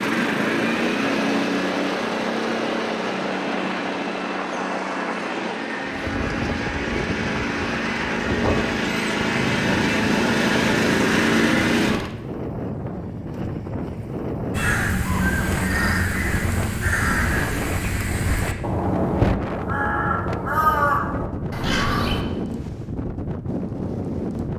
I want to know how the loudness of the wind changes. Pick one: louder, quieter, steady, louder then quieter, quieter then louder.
steady.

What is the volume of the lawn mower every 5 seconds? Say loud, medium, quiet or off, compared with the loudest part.
medium, medium, loud, off, off.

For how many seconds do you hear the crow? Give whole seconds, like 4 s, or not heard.
8 s.